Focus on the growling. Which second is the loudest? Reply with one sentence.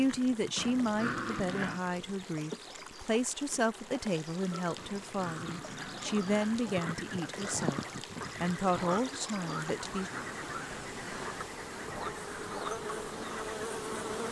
The loudest moment of the growling is at 1 second.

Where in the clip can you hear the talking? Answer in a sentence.
The talking can be heard from 0.0 to 7.8 s and from 8.4 to 10.1 s.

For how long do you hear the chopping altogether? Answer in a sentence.
The chopping can't be heard in this clip.